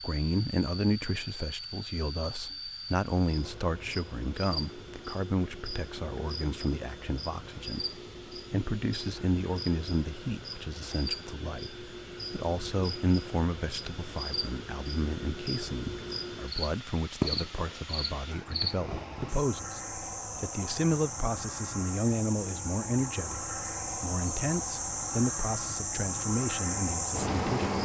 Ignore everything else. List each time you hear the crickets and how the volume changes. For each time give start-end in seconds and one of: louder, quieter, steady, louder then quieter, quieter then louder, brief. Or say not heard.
0.0-27.8 louder.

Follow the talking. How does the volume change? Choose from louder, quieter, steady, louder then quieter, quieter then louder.
steady.